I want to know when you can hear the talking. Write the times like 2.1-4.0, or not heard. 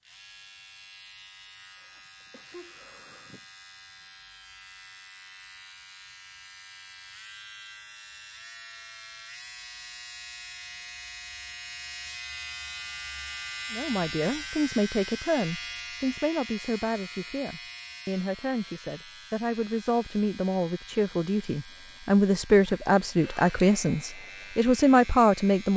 13.7-25.7.